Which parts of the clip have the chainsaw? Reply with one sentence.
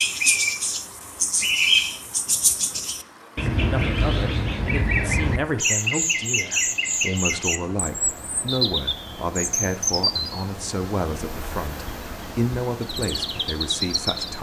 The chainsaw can't be heard in this clip.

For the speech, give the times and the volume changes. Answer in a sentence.
You can hear the speech from 3.5 to 14.3 s, at a steady volume.